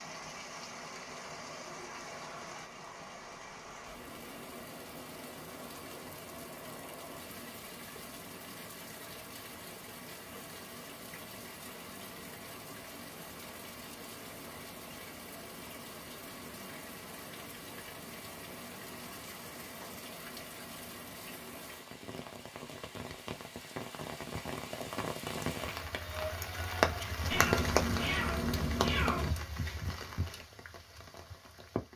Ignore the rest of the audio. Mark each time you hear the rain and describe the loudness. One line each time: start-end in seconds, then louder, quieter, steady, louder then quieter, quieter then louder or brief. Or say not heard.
0.0-31.9 louder.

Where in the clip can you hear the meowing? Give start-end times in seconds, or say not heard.
27.3-29.3.